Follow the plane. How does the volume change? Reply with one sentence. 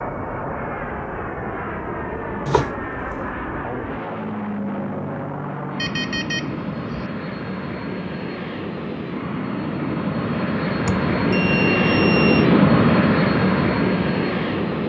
The volume of the plane goes up.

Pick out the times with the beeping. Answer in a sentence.
The beeping can be heard from 2.5 to 3.1 s, from 5.8 to 7.0 s and from 10.8 to 12.4 s.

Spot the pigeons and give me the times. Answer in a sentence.
You can't hear the pigeons here.